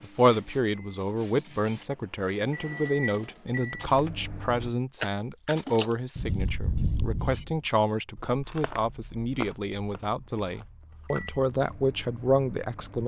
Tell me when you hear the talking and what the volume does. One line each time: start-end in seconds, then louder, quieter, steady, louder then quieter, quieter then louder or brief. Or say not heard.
0.0-13.0 steady.